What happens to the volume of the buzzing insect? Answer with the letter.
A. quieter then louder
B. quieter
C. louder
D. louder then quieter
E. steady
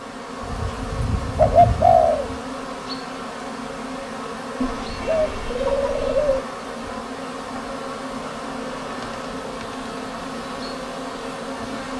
E.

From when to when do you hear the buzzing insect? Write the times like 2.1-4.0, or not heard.
0.0-11.9.